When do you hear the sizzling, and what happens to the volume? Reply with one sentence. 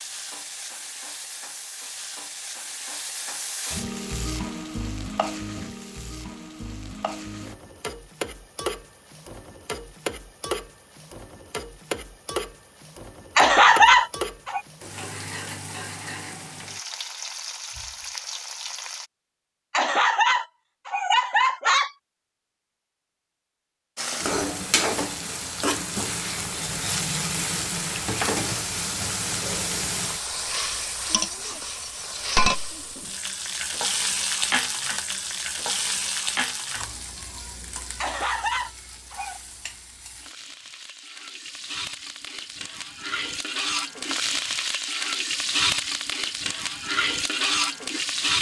You can hear the sizzling from 0.0 to 19.1 s, at a steady volume; and from 23.9 to 48.3 s, getting quieter then louder.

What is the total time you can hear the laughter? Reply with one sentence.
The laughter can be heard for 5 seconds in total.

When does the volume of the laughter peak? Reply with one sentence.
The loudest moment of the laughter is at 14 seconds.